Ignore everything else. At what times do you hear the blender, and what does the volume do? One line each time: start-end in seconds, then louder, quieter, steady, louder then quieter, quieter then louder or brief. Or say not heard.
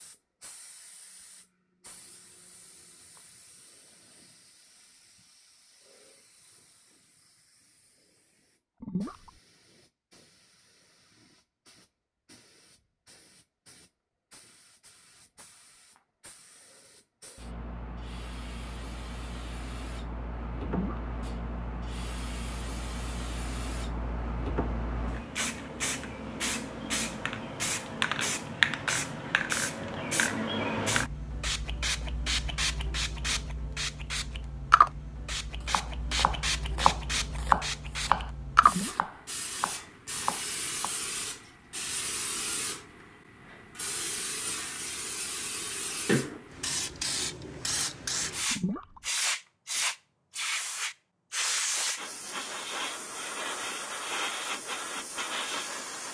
not heard.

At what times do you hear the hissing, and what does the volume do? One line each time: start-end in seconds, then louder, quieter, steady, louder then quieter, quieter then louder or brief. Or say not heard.
0.0-56.0 louder.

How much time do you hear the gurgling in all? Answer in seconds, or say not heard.
2 s.